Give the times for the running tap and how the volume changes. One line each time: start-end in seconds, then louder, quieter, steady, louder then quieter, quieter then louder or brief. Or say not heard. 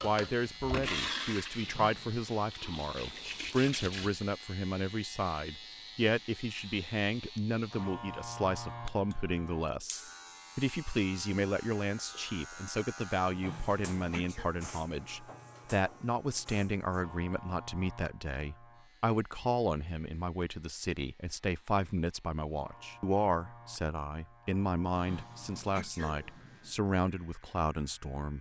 0.0-4.1 quieter then louder.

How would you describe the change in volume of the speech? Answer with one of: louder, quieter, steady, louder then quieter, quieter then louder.
steady.